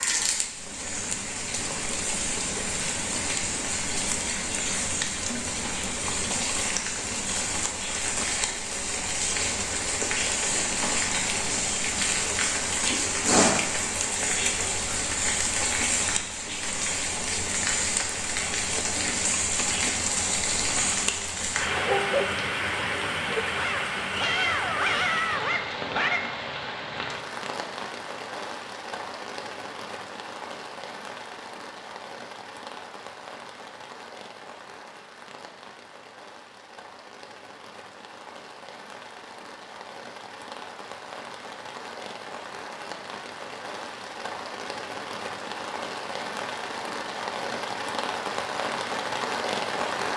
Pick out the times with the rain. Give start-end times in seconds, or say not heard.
0.0-50.1.